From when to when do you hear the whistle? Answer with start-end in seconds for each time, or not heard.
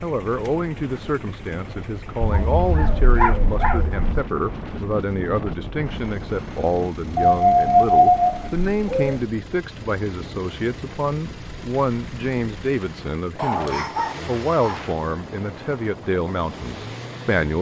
not heard.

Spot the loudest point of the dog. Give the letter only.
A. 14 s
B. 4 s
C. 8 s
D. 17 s
C.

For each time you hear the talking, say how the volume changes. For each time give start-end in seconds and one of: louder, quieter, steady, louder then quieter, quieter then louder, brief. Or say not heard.
0.0-17.5 steady.